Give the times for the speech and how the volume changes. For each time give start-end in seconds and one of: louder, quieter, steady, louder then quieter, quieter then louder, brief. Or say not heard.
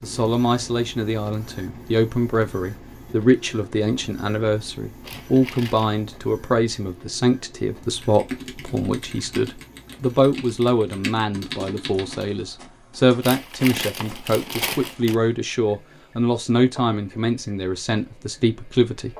0.0-19.1 steady.